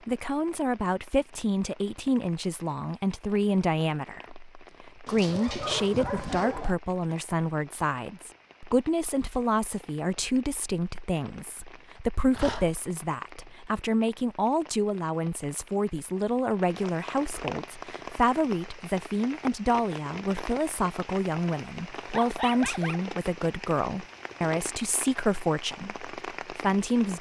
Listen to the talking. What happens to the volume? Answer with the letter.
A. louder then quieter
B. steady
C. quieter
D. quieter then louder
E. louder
B.